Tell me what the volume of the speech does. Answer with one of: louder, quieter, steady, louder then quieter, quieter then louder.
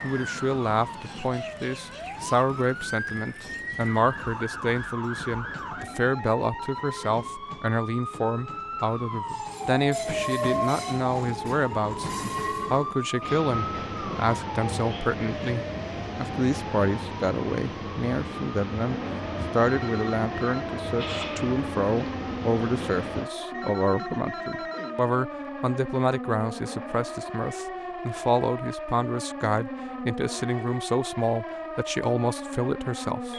steady.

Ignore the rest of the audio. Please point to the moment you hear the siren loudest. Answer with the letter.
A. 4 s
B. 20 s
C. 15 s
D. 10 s
D.